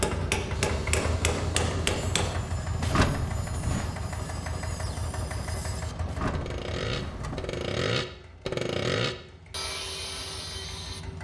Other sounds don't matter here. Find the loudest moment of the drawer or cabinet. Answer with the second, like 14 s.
3 s.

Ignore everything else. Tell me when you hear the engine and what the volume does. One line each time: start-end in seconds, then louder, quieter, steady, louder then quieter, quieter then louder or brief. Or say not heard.
0.0-11.1 quieter.